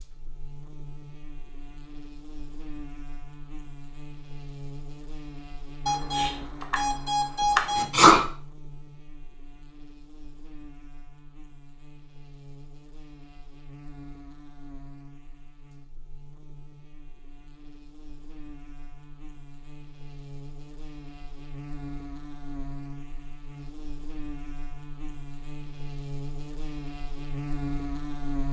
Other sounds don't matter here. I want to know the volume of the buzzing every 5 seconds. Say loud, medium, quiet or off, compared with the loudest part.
medium, medium, quiet, quiet, medium, loud.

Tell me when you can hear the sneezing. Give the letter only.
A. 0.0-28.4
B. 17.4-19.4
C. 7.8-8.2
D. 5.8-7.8
C.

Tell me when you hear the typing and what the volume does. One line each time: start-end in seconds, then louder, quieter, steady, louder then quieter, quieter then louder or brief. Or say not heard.
not heard.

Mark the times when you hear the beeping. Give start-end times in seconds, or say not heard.
5.8-7.8.